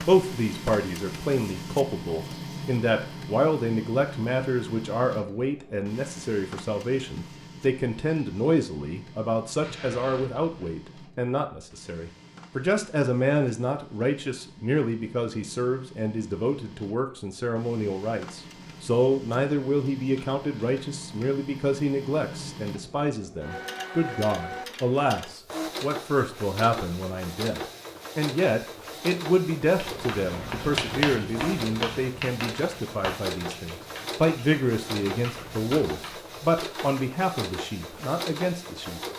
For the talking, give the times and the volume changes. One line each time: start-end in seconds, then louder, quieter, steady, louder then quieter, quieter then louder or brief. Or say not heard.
0.0-39.0 steady.